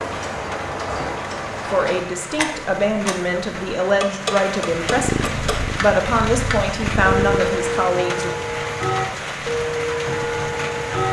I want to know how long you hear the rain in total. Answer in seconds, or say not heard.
11 s.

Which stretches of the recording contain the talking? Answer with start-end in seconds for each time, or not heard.
1.6-8.3.